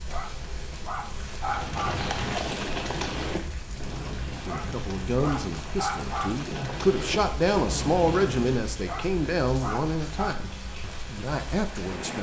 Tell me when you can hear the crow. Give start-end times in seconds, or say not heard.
not heard.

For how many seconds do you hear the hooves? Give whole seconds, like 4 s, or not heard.
7 s.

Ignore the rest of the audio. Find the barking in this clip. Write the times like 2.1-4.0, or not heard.
0.1-2.1, 4.5-6.5, 8.8-10.4.